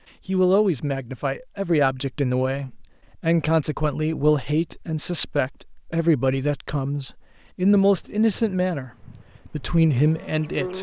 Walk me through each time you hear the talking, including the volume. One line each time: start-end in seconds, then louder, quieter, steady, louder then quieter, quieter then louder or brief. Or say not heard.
0.2-10.7 steady.